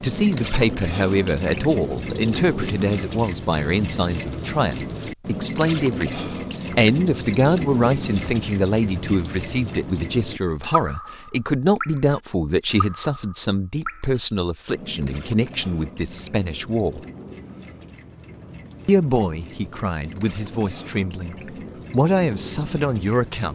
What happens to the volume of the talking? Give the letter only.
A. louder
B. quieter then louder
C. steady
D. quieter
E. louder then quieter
C.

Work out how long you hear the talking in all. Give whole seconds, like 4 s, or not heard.
22 s.